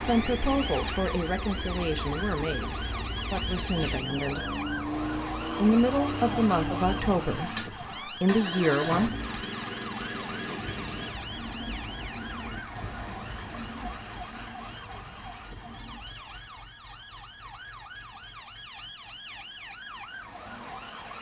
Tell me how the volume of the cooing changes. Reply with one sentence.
The volume of the cooing goes down.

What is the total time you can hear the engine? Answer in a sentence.
The engine can be heard for 21 seconds in total.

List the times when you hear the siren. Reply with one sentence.
The siren can be heard from 0.0 to 21.1 s.